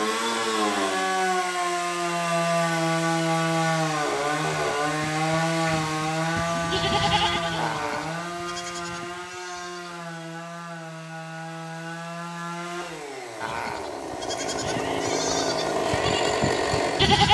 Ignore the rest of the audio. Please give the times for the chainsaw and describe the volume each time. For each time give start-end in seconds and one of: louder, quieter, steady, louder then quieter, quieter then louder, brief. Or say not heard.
0.0-17.2 quieter then louder.